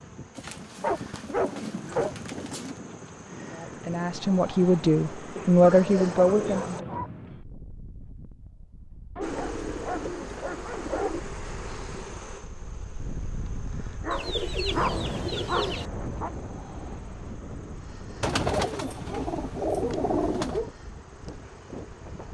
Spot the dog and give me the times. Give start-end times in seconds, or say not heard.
0.8-2.1, 5.6-7.1, 9.2-11.2, 13.8-16.3, 18.2-20.7.